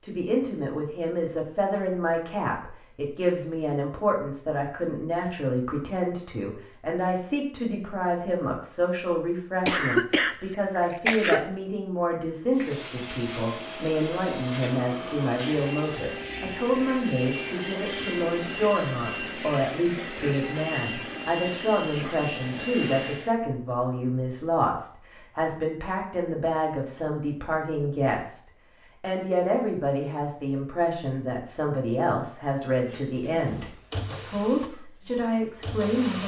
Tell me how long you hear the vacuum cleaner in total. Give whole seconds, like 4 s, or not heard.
14 s.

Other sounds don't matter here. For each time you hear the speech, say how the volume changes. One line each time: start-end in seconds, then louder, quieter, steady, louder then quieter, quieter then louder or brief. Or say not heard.
0.0-28.4 steady
29.0-36.2 steady.